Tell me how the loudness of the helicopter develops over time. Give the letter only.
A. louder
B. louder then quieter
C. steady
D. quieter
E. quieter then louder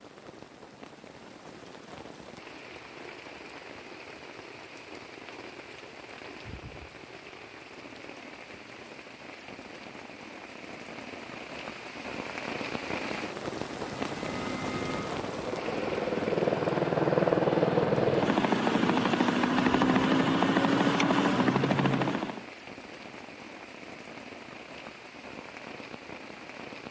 A.